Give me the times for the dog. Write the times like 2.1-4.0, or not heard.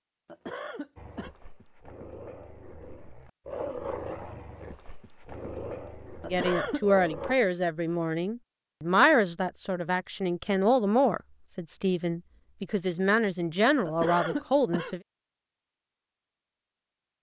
0.9-7.3.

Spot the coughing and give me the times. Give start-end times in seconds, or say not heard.
0.2-1.3, 6.2-6.8, 13.8-14.9.